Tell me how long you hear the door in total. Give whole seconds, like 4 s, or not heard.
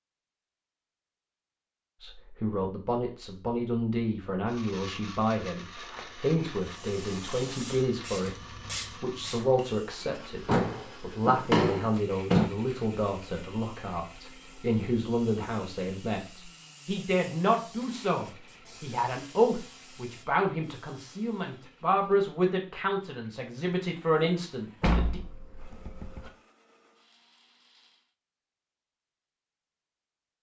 5 s.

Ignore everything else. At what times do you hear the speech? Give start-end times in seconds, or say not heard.
2.0-8.3, 9.0-25.2.